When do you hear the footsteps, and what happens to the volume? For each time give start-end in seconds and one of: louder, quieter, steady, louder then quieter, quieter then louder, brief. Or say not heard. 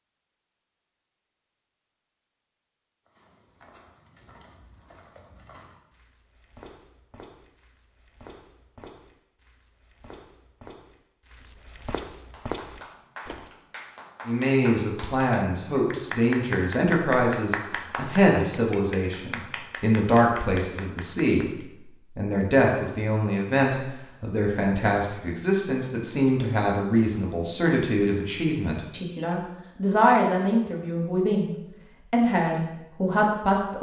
3.0-13.5 louder.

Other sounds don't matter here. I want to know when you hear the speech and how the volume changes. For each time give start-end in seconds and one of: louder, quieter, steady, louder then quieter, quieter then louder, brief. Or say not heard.
14.2-33.7 steady.